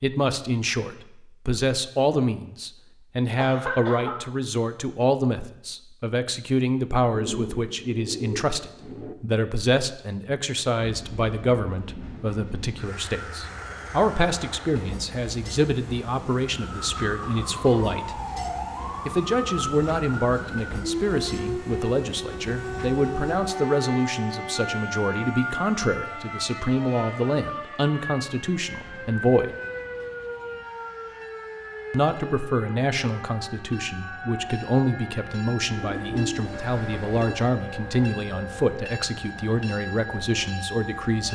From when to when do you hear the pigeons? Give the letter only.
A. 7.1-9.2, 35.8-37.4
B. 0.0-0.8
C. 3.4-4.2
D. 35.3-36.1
A.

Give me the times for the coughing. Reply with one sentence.
The coughing can be heard from 3.4 to 4.2 s.